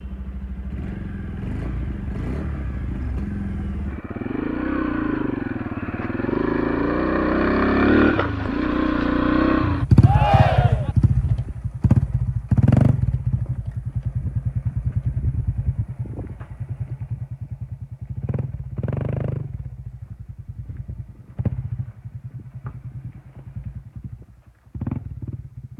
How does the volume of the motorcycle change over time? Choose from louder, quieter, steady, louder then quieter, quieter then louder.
louder then quieter.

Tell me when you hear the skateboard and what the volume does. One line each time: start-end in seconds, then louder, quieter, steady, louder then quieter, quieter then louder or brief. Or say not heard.
not heard.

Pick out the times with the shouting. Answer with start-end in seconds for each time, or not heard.
10.0-10.9.